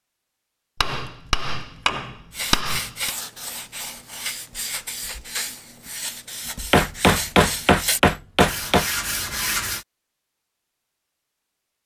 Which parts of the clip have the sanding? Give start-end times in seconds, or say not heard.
2.3-9.8.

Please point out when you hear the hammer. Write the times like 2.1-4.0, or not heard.
0.8-3.1, 6.7-8.9.